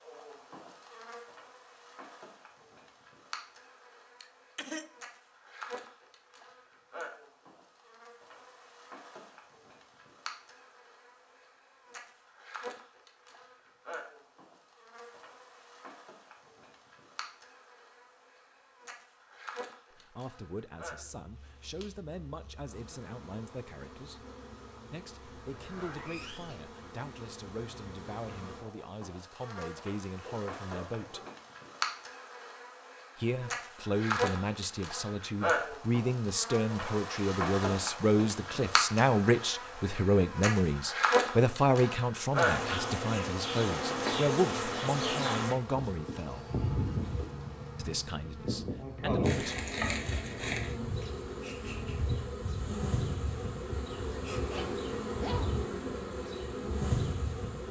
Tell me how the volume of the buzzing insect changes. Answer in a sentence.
The loudness of the buzzing insect goes up.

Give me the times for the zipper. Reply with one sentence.
The zipper can be heard from 25.4 to 26.6 s and from 54.4 to 55.5 s.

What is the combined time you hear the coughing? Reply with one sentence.
You can hear the coughing for 2 seconds altogether.